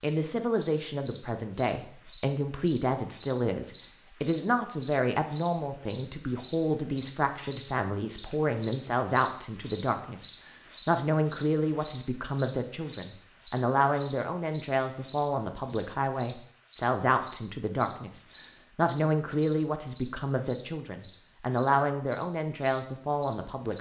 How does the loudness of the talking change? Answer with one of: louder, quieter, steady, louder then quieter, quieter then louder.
steady.